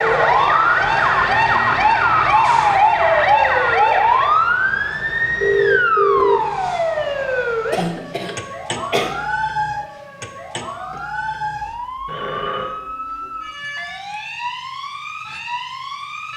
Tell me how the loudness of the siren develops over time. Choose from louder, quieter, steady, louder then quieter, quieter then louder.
quieter.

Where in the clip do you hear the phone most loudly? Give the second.
6 s.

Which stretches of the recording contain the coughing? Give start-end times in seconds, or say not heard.
7.7-9.2.